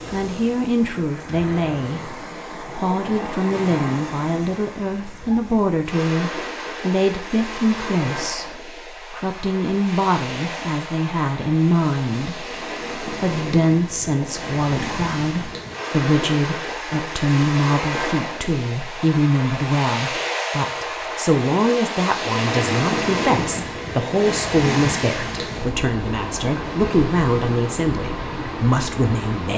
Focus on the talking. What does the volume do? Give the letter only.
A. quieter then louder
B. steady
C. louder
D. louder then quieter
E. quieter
B.